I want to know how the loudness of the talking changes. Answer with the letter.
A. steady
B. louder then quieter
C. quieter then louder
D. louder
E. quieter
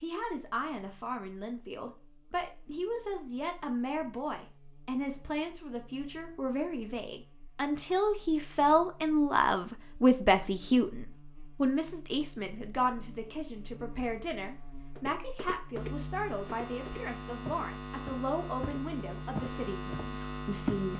B.